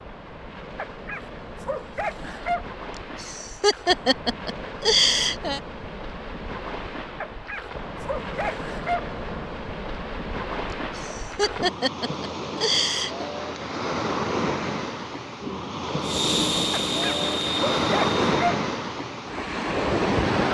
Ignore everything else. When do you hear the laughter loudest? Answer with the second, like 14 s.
5 s.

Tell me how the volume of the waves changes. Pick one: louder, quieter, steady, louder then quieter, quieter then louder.
louder.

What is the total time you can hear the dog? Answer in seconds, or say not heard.
6 s.